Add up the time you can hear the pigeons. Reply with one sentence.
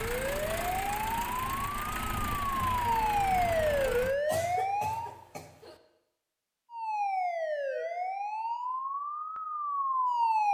You can't hear the pigeons here.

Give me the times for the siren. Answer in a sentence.
You can hear the siren from 0.0 to 5.2 s and from 6.7 to 10.4 s.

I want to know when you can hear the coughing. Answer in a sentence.
You can hear the coughing from 4.2 to 5.8 s.